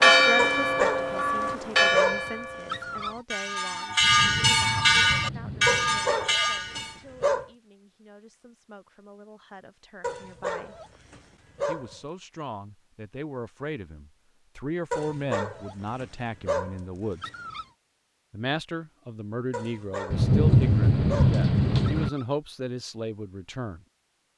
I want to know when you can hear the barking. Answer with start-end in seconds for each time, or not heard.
0.3-3.2, 5.7-7.5, 10.0-12.0, 14.9-17.6, 19.5-22.2.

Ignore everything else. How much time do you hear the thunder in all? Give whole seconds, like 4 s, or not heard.
4 s.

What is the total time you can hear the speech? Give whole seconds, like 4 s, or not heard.
22 s.